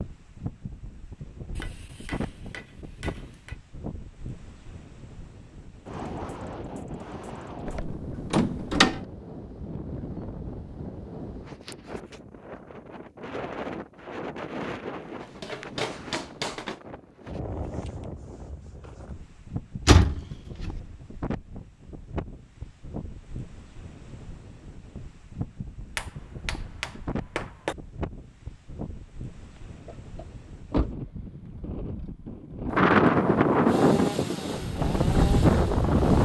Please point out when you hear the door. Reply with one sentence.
The door can be heard from 7.7 to 9.0 s, from 19.9 to 20.7 s and from 29.6 to 31.1 s.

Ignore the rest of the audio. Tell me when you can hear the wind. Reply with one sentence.
The wind can be heard from 0.0 to 36.2 s.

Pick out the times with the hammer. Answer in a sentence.
You can hear the hammer from 1.6 to 3.6 s, from 15.2 to 16.8 s and from 25.9 to 27.8 s.